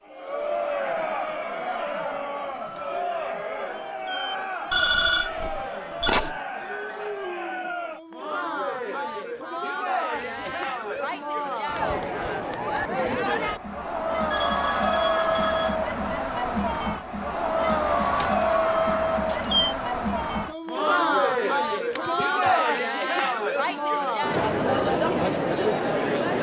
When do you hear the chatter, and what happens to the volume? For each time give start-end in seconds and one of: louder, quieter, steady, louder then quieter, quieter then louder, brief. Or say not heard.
0.1-26.3 louder.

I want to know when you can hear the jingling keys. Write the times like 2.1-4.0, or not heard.
2.5-4.4, 10.2-11.7, 17.9-19.8.